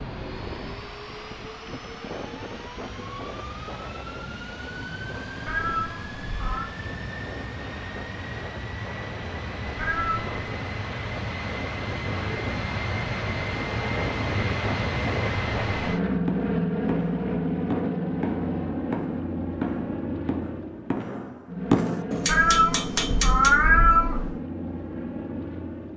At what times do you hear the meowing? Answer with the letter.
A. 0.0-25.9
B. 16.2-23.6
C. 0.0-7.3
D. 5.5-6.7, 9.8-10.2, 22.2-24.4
D.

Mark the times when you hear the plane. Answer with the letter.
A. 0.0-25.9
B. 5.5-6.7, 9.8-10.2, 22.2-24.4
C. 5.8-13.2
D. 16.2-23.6
A.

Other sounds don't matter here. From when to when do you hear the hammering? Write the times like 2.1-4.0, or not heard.
16.2-23.6.